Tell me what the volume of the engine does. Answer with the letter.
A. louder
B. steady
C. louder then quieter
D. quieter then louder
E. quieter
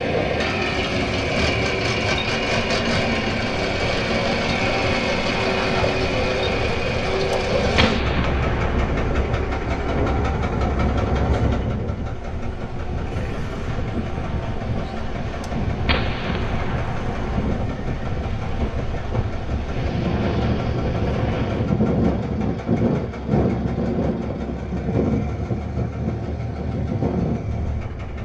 E.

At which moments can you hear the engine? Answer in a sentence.
The engine can be heard from 0.0 to 28.2 s.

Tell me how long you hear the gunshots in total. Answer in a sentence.
You can hear the gunshots for 4 seconds altogether.